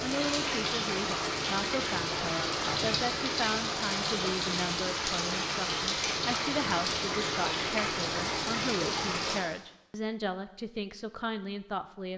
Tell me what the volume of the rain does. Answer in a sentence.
The volume of the rain stays about the same.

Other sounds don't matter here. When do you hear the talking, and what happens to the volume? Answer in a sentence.
You can hear the talking from 0.0 to 12.1 s, at a steady volume.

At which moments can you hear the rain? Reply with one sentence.
You can hear the rain from 0.0 to 9.4 s.